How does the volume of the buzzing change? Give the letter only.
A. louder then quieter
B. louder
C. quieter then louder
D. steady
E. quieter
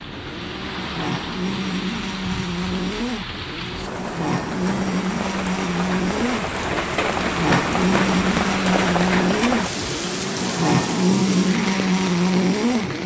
B.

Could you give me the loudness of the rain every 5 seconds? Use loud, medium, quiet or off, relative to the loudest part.
medium, loud, medium.